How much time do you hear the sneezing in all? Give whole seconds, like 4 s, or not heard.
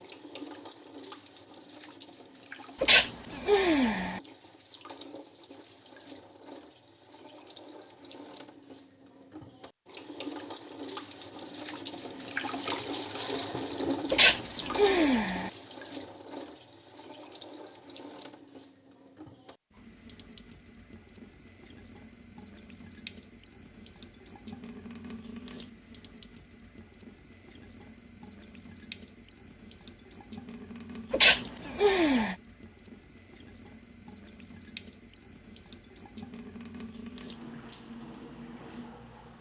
4 s.